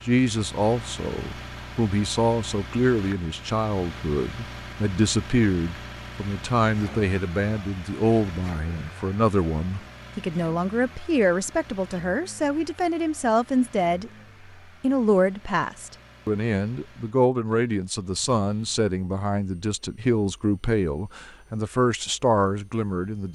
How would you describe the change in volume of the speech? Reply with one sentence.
The volume of the speech stays about the same.